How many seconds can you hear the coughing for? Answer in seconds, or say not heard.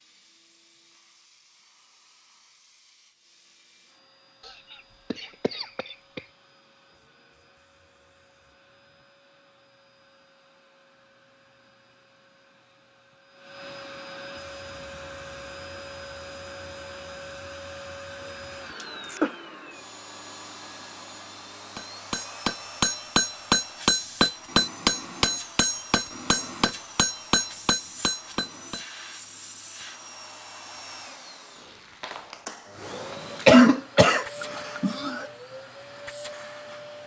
4 s.